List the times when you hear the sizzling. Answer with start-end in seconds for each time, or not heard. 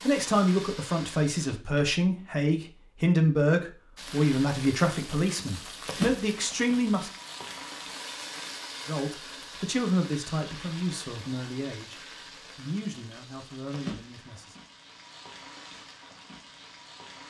0.0-1.6, 4.0-17.2.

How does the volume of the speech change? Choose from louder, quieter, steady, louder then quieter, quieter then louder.
quieter.